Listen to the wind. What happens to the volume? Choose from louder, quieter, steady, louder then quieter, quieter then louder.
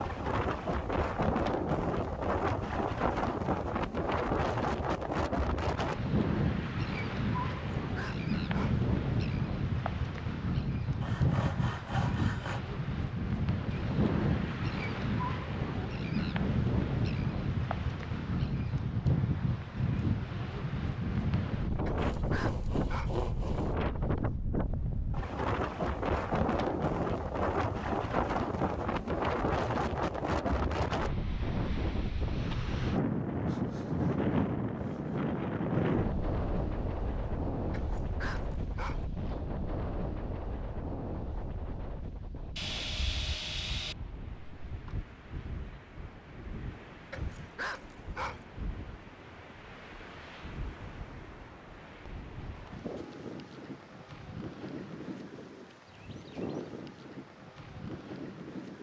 quieter.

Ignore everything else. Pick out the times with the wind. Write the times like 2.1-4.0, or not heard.
0.0-58.7.